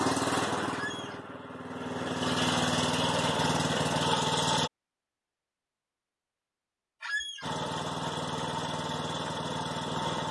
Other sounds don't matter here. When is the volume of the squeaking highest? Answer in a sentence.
The loudest moment of the squeaking is at 7 seconds.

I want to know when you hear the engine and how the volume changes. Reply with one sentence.
You can hear the engine from 0.0 to 4.7 s, getting quieter then louder; and briefly from 7.4 to 10.2 s.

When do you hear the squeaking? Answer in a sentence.
The squeaking can be heard from 0.7 to 1.2 s and from 7.0 to 7.5 s.